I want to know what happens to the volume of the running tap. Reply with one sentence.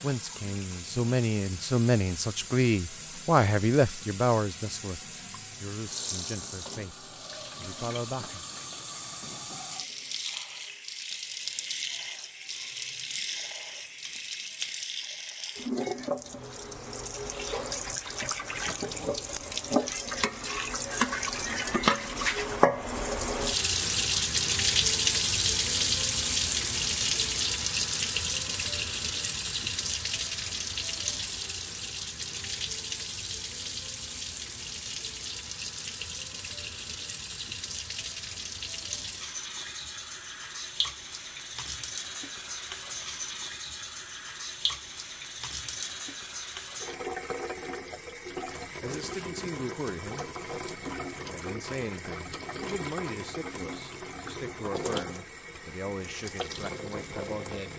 The loudness of the running tap goes up, then down.